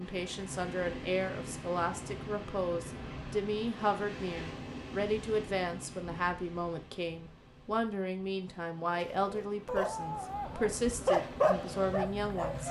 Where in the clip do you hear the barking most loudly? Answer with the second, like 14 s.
11 s.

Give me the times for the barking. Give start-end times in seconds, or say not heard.
8.9-12.6.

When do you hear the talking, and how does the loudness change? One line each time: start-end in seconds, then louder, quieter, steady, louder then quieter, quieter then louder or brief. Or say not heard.
0.0-12.6 steady.